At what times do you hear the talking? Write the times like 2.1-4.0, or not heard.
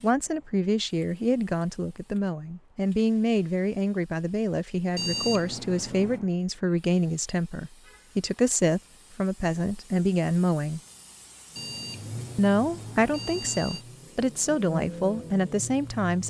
0.0-10.8, 12.3-16.2.